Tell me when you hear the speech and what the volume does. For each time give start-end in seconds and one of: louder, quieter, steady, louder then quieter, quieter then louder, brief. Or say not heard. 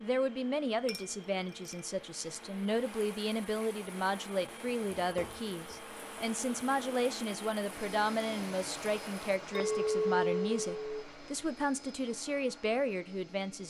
0.0-13.6 steady.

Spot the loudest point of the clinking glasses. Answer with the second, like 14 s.
10 s.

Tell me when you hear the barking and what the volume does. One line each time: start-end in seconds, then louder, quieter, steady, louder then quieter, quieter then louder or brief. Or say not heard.
not heard.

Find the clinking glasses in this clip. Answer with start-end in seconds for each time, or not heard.
0.8-1.9, 5.0-5.8, 9.5-10.8.